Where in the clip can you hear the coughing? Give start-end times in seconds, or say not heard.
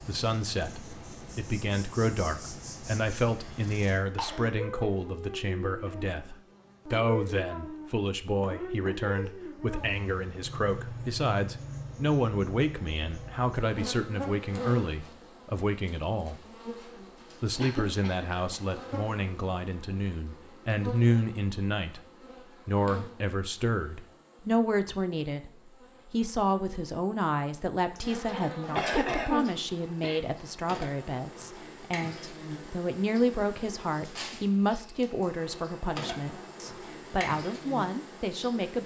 3.4-4.5, 17.6-18.8, 27.9-30.2.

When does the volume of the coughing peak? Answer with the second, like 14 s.
29 s.